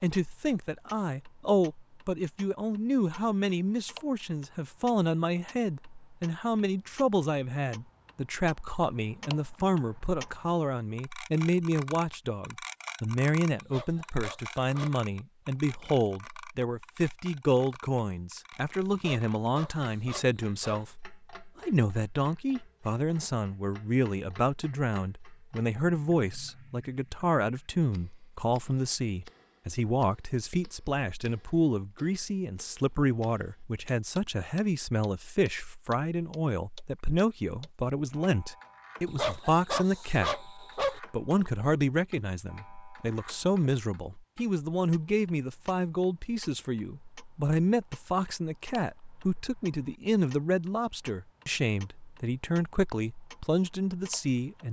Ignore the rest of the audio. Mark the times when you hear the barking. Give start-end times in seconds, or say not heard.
13.6-14.9, 18.9-20.9, 39.0-41.0.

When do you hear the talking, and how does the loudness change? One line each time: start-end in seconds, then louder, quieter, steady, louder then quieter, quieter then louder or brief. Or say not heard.
0.0-54.6 steady.